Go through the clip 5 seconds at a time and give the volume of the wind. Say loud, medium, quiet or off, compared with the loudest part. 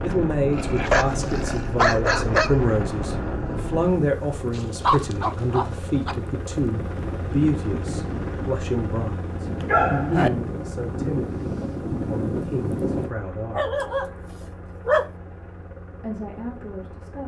loud, medium, loud, off.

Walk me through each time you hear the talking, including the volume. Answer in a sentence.
The talking can be heard from 0.0 to 14.1 s, getting quieter; and briefly from 16.0 to 17.2 s.